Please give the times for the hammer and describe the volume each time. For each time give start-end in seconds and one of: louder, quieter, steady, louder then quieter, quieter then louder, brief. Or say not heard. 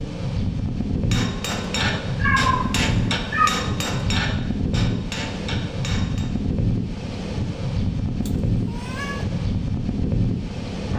1.1-6.3 quieter.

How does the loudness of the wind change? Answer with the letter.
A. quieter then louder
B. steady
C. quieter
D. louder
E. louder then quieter
B.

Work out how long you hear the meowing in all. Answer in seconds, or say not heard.
2 s.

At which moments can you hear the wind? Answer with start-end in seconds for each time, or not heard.
0.0-10.9.